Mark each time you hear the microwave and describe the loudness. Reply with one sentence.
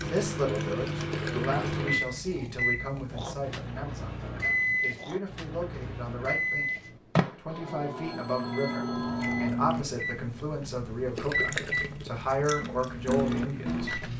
You can hear the microwave from 0.0 to 14.1 s, at a steady volume.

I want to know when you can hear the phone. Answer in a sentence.
You can hear the phone from 7.5 to 9.5 s.